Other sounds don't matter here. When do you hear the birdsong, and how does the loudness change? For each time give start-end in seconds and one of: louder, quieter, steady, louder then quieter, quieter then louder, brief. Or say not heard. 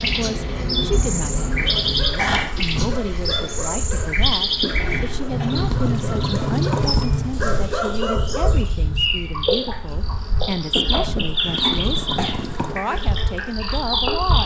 0.0-14.4 steady.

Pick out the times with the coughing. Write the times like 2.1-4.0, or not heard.
4.8-5.5, 10.8-12.3.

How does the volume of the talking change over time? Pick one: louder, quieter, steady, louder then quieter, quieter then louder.
steady.